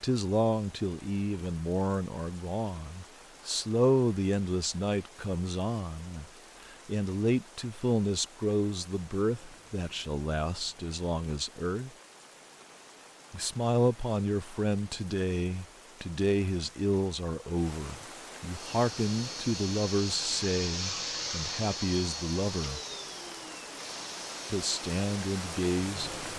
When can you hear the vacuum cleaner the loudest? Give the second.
21 s.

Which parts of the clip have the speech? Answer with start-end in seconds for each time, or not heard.
0.0-11.9, 13.3-22.8, 24.5-26.1.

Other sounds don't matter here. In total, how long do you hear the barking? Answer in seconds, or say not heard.
not heard.